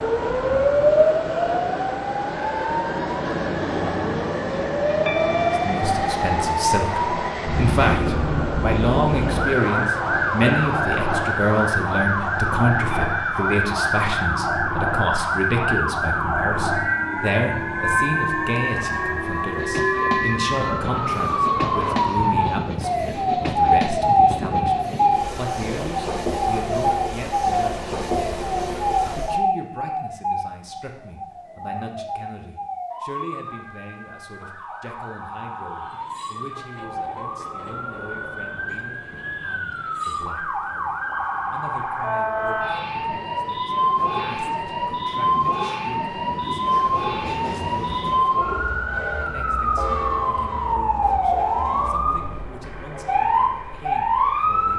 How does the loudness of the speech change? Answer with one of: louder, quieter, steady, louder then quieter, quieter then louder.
quieter.